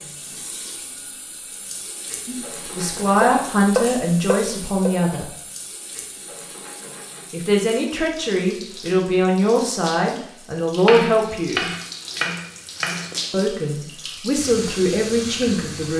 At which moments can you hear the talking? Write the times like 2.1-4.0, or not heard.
2.2-5.3, 7.3-11.7, 13.3-15.9.